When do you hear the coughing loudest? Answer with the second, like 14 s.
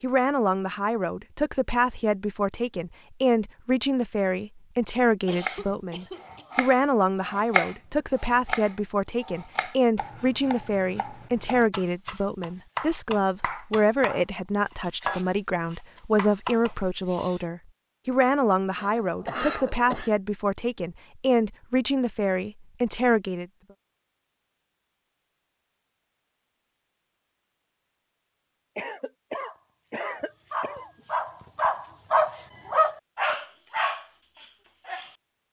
19 s.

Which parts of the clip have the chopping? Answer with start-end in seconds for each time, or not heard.
5.3-17.4.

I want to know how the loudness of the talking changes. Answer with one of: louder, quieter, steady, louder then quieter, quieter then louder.
steady.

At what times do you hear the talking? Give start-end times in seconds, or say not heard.
0.0-23.4.